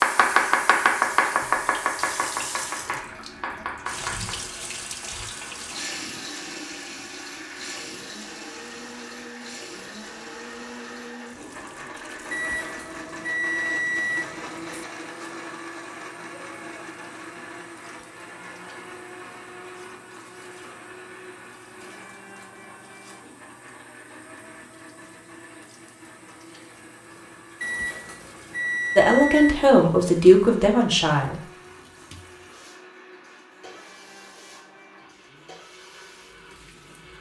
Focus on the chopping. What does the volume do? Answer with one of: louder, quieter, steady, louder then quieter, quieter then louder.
quieter.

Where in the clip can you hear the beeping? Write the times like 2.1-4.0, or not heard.
12.3-14.8, 27.6-29.7.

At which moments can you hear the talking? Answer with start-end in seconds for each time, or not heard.
28.9-31.4.